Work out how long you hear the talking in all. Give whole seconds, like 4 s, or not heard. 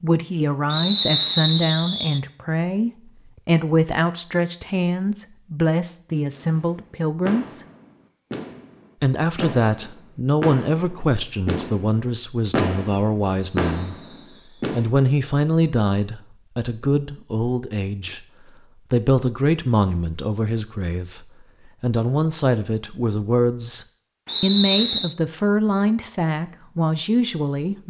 26 s.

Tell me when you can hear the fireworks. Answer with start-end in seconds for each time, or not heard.
6.3-14.9.